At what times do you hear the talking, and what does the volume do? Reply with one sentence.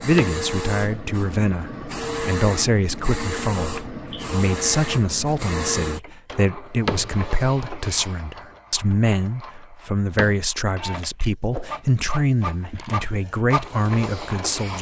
You can hear the talking from 0.0 to 14.7 s, at a steady volume.